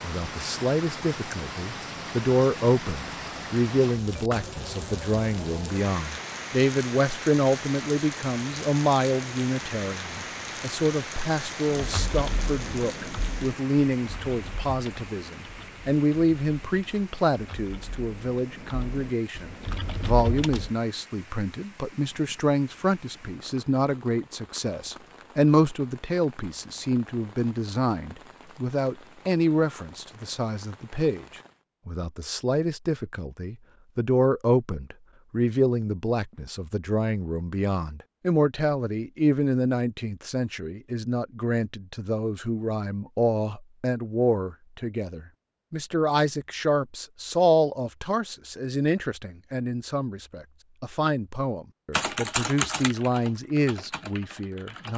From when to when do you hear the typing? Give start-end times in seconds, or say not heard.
11.7-20.8, 51.9-54.9.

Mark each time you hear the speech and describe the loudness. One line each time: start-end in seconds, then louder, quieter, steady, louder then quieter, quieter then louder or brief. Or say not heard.
0.0-54.9 steady.